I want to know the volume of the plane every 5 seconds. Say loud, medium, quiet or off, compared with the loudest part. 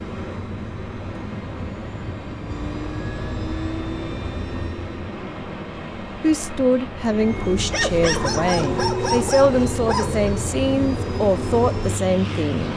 medium, loud, loud.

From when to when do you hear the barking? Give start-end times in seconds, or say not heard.
7.7-10.3.